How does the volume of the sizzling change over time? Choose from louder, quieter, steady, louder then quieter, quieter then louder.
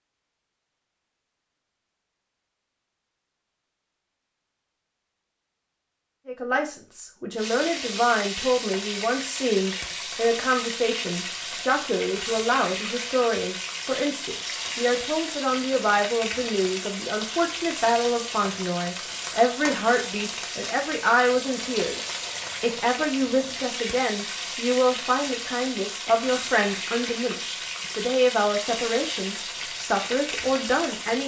steady.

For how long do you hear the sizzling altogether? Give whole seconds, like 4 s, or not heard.
24 s.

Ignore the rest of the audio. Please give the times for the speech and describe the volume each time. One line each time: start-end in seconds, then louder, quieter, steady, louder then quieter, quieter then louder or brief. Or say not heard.
6.2-31.2 steady.